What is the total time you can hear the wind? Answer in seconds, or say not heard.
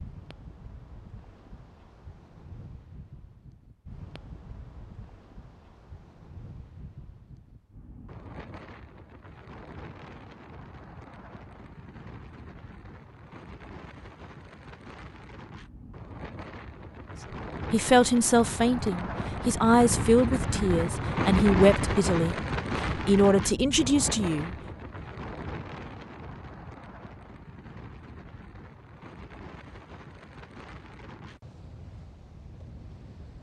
33 s.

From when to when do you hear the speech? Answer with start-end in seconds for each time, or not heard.
17.7-22.4, 22.9-24.5.